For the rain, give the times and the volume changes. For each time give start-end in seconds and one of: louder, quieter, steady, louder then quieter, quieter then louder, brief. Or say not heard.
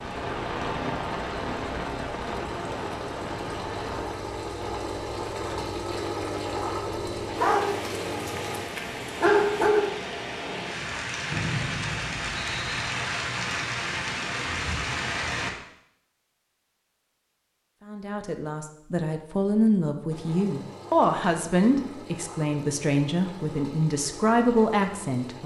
0.0-15.5 quieter then louder.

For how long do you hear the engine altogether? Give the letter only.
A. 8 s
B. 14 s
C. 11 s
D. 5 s
B.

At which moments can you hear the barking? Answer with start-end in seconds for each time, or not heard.
7.3-9.9.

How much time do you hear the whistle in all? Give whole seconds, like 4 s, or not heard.
2 s.